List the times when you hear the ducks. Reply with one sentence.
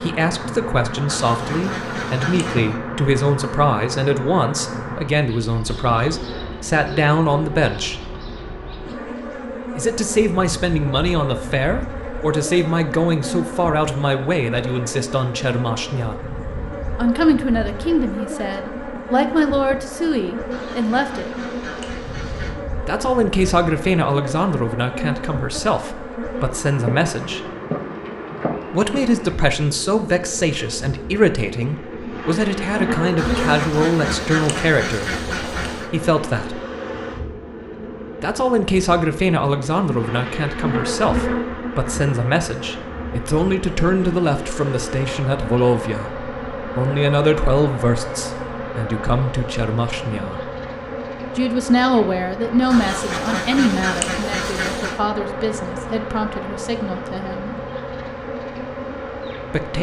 The ducks can be heard from 1.1 to 2.8 s, from 20.5 to 22.6 s, from 33.1 to 35.9 s and from 52.7 to 55.0 s.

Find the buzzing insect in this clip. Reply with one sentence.
The buzzing insect can be heard from 0.0 to 59.7 s.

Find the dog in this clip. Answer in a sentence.
The dog can't be heard in this clip.